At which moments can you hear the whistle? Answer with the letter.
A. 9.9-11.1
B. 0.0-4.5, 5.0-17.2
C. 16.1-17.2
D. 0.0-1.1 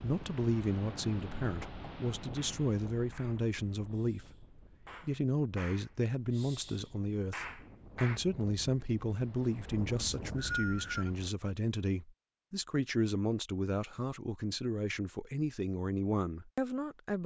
A.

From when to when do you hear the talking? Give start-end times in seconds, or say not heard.
0.0-4.5, 5.0-17.2.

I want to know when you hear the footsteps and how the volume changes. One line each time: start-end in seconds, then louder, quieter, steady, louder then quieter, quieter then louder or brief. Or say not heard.
not heard.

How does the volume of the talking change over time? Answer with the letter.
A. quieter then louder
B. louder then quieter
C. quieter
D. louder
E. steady
E.